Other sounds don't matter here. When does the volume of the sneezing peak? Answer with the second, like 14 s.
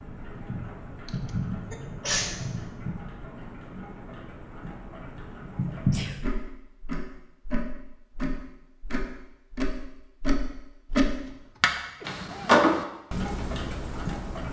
2 s.